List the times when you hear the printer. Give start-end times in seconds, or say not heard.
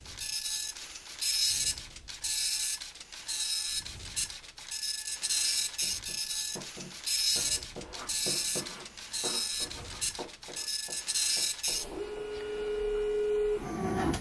0.0-14.1.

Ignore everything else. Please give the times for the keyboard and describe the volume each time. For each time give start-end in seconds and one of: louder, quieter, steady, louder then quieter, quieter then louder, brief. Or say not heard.
not heard.